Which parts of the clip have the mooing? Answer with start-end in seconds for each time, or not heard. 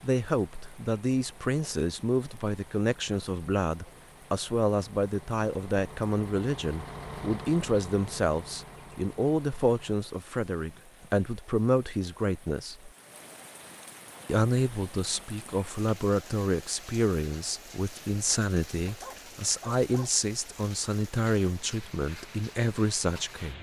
not heard.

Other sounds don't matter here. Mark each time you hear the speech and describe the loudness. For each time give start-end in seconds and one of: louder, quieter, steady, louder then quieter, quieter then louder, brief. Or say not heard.
0.0-12.9 steady
14.2-23.5 steady.